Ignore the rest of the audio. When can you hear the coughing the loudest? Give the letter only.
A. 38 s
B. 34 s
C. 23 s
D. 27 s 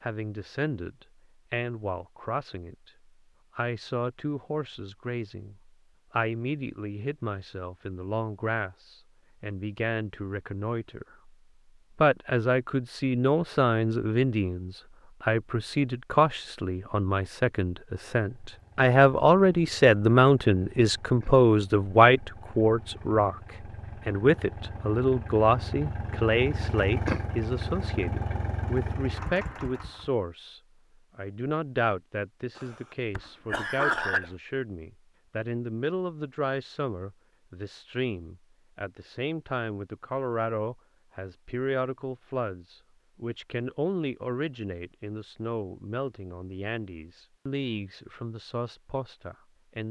B.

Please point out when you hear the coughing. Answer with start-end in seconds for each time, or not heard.
32.5-34.3.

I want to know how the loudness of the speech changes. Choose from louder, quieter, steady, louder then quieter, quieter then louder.
louder then quieter.